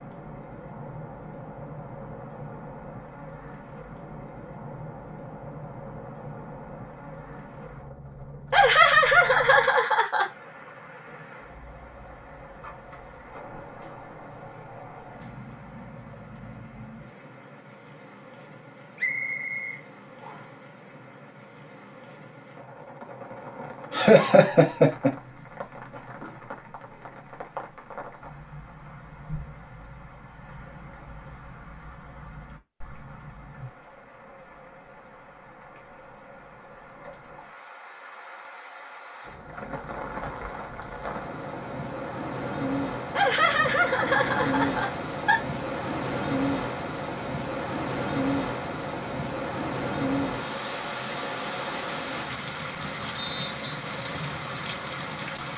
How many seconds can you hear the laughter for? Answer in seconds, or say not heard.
5 s.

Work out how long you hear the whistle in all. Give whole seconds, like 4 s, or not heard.
2 s.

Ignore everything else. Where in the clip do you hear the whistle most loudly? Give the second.
19 s.